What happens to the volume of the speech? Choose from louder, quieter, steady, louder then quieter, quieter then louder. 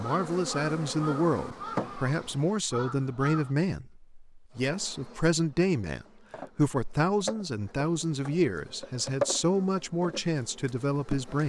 steady.